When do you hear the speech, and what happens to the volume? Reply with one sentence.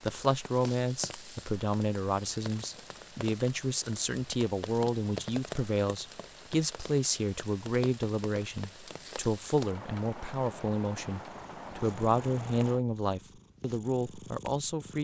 The speech can be heard from 0.0 to 14.9 s, at a steady volume.